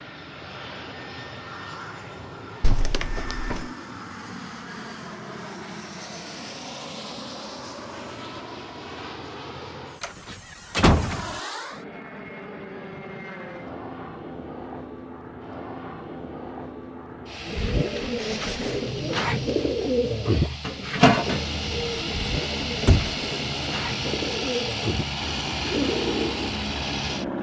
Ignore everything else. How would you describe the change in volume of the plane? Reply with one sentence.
The loudness of the plane goes up.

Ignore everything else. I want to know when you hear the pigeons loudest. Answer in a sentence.
The volume of the pigeons peaks at 21 seconds.